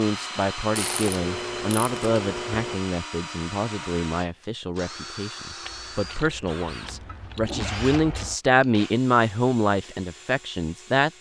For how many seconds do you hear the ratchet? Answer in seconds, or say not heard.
5 s.